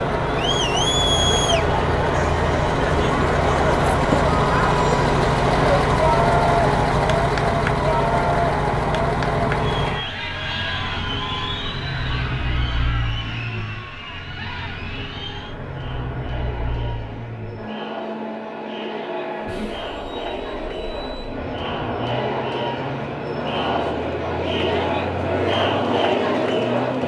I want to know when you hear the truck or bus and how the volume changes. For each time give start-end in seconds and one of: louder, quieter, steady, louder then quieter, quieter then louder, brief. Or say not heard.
0.0-27.0 quieter.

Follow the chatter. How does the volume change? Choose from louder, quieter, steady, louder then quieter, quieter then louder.
quieter then louder.